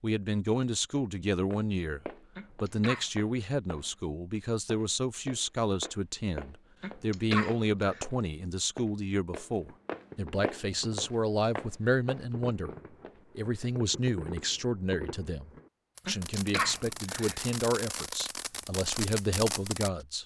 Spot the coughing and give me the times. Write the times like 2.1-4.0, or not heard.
2.4-3.1, 6.8-8.1, 16.1-17.4.